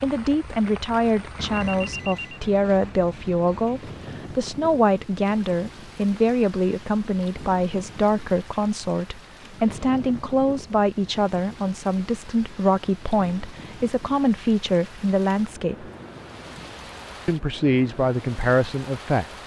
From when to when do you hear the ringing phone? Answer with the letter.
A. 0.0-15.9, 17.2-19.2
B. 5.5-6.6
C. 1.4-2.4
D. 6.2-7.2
C.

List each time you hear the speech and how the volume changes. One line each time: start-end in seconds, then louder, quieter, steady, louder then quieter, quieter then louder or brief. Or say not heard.
0.0-15.9 steady
17.2-19.2 brief.